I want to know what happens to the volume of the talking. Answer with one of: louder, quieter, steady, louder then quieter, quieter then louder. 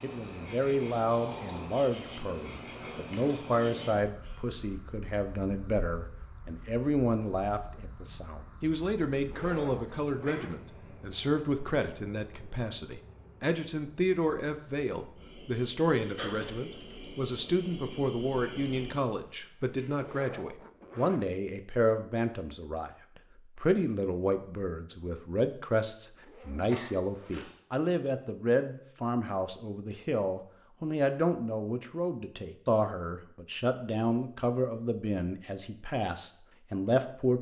steady.